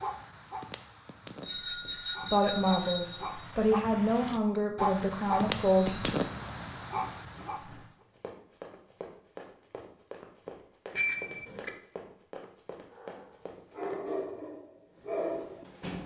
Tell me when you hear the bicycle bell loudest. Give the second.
11 s.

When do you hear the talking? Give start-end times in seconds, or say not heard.
2.2-6.2.